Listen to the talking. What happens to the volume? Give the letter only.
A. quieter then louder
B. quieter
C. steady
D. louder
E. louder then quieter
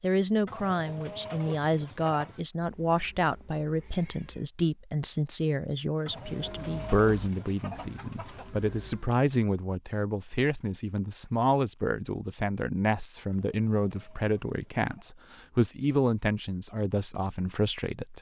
C.